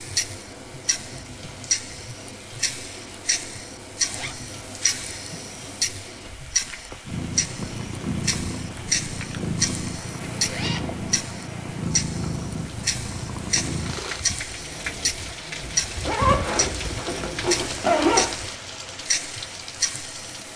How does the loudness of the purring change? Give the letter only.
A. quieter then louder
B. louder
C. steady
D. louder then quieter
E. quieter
C.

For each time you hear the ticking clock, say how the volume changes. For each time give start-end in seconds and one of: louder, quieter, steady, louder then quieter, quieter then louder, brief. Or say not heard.
0.0-20.5 steady.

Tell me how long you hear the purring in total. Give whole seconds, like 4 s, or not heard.
7 s.